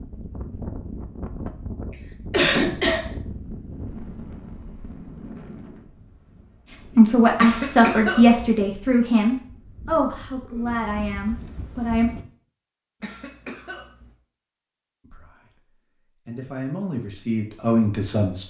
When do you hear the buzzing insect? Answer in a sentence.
The buzzing insect can't be heard in this clip.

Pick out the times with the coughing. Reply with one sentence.
You can hear the coughing from 2.3 to 3.0 s, from 7.4 to 8.4 s and from 13.0 to 14.1 s.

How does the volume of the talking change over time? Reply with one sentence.
The loudness of the talking goes down, then up.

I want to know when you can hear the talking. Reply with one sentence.
You can hear the talking from 7.0 to 12.1 s and from 15.0 to 18.4 s.